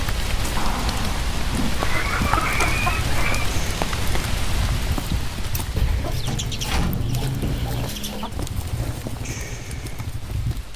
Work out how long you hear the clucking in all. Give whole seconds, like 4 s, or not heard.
4 s.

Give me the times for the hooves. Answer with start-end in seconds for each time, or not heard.
2.0-10.7.